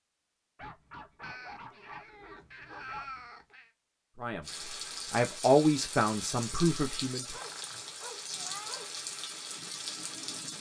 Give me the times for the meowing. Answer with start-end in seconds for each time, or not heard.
1.2-3.7, 7.3-8.8.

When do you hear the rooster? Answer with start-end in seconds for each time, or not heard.
not heard.